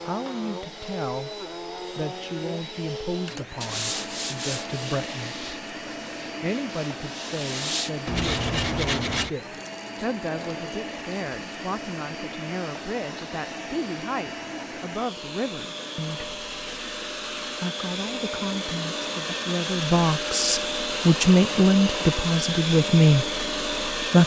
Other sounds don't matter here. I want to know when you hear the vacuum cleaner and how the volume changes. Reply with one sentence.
You can hear the vacuum cleaner from 0.0 to 24.2 s, getting louder.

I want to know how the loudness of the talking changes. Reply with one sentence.
The loudness of the talking goes up.